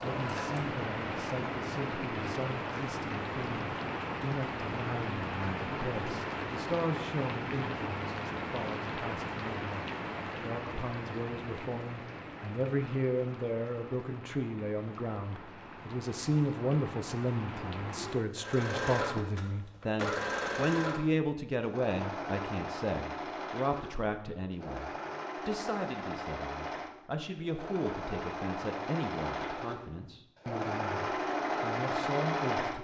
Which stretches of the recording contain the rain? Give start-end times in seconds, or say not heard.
0.0-18.4.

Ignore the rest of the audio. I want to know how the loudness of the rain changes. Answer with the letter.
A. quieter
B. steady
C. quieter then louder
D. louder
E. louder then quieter
A.